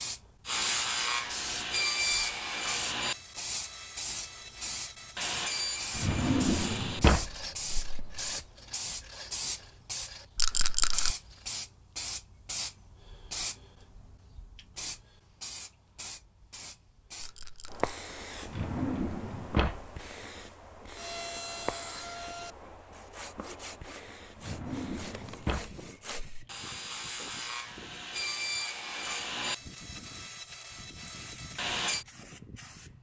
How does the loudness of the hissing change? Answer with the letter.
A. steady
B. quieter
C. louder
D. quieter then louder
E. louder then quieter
B.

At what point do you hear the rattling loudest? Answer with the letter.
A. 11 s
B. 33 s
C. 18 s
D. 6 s
A.